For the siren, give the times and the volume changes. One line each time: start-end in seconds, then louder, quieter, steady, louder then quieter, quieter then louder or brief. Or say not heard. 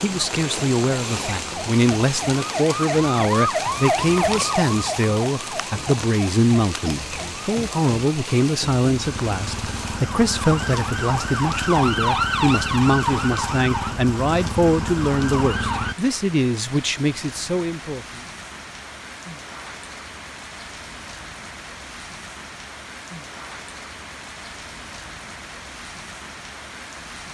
0.0-15.9 quieter then louder.